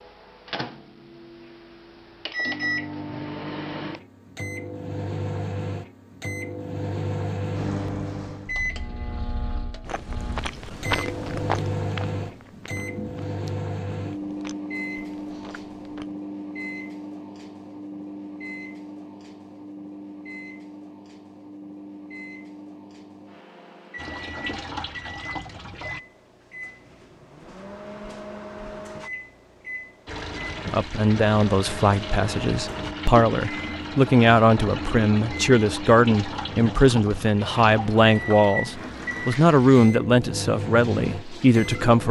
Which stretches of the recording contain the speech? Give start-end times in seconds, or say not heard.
30.6-42.0.